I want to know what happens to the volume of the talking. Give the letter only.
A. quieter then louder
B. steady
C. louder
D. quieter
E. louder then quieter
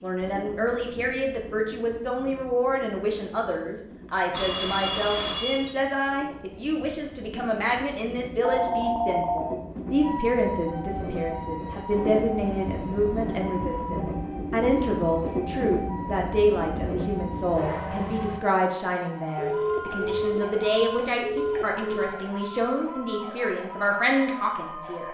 B.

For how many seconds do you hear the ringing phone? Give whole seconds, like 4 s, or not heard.
5 s.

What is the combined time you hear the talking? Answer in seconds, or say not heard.
25 s.